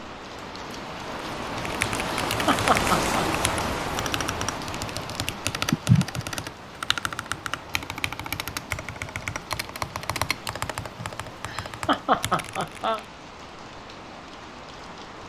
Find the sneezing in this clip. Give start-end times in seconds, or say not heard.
not heard.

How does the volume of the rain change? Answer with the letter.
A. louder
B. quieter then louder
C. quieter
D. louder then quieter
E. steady
C.